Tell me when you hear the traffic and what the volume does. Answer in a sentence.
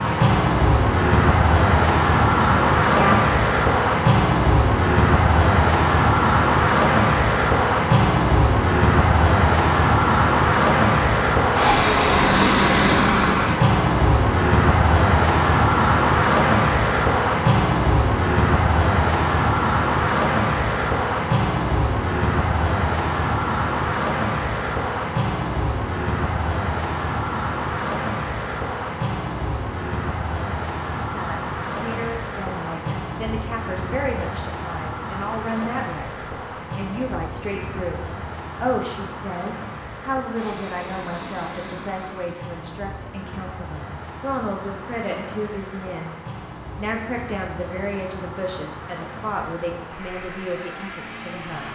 You can hear the traffic from 0.0 to 51.6 s, getting quieter.